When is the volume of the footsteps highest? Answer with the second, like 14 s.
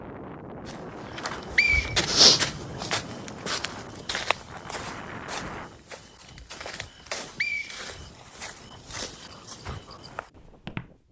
2 s.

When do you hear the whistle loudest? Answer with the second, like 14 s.
2 s.